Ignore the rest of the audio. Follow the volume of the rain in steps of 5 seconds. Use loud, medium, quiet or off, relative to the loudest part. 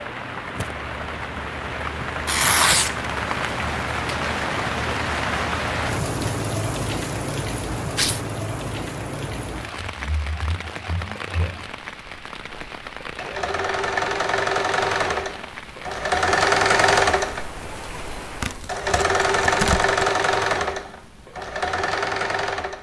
loud, loud, medium, medium, off.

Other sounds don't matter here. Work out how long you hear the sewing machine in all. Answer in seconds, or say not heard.
13 s.